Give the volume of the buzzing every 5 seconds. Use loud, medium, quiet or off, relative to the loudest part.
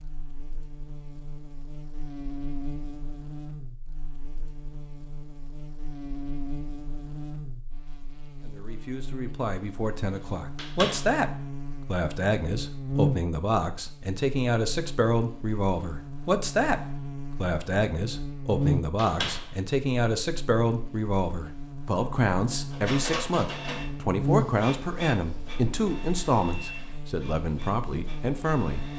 medium, medium, loud, loud, loud, medium.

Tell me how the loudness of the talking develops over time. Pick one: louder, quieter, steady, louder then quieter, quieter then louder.
steady.